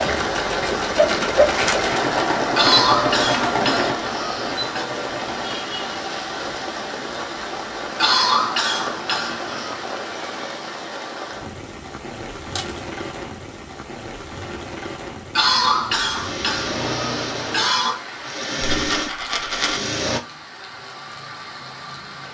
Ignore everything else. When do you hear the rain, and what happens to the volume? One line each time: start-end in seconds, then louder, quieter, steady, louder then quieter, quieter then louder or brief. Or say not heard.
0.0-22.2 quieter.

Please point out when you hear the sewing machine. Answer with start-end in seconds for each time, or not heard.
0.0-5.5, 16.1-20.2.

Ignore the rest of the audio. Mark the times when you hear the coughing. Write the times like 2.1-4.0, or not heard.
2.5-4.8, 8.0-9.8, 15.3-18.0.